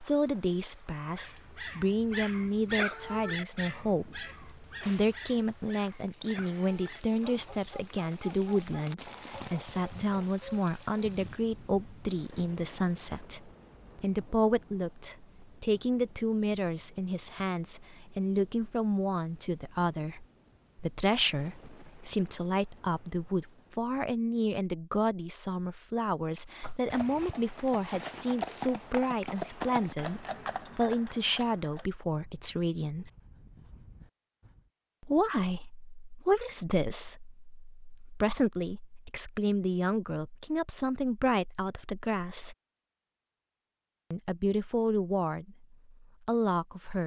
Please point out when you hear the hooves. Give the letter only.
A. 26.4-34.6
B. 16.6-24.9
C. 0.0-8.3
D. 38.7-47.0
A.